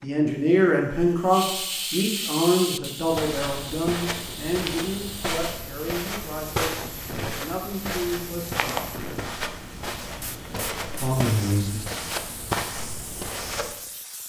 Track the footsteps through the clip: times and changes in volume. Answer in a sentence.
You can hear the footsteps from 3.0 to 13.8 s, at a steady volume.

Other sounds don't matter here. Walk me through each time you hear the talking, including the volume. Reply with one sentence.
You can hear the talking from 0.0 to 8.8 s, getting quieter; and briefly from 11.0 to 11.8 s.